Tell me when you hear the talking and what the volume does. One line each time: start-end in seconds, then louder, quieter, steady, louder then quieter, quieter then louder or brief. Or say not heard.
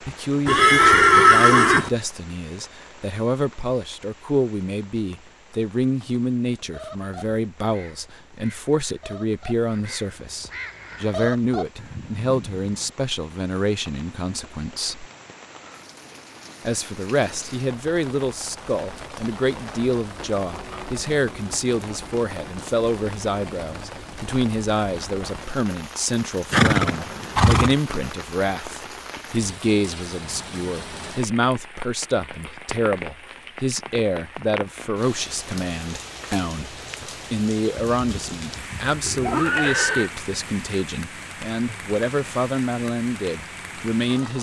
0.0-15.1 steady
16.6-44.3 steady.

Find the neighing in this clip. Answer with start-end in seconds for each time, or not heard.
0.5-1.9, 26.5-27.8, 38.0-40.1.